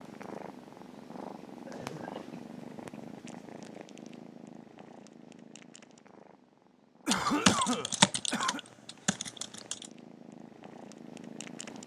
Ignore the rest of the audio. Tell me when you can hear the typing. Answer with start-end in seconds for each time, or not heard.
7.1-9.8.